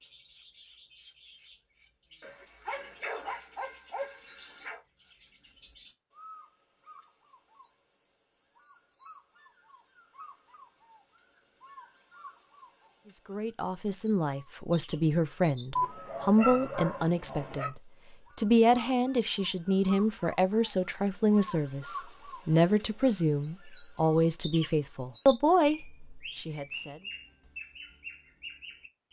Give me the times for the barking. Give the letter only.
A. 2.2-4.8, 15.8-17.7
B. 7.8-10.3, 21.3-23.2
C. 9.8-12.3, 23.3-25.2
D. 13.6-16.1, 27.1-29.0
A.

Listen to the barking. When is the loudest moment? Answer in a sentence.
The loudest moment of the barking is at 16 seconds.